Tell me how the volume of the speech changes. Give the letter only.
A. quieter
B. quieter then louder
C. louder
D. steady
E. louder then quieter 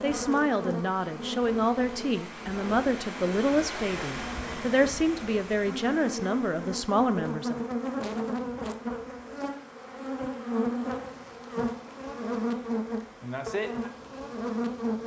D.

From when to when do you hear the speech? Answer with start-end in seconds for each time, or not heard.
0.0-7.7.